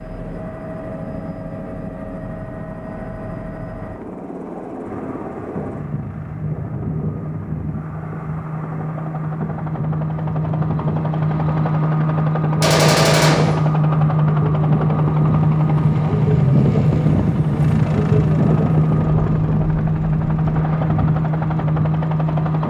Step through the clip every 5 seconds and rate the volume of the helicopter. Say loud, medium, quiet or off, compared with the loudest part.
quiet, medium, loud, loud, loud.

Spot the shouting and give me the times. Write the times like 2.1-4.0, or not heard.
not heard.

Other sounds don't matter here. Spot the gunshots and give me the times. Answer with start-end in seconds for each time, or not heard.
12.6-13.6.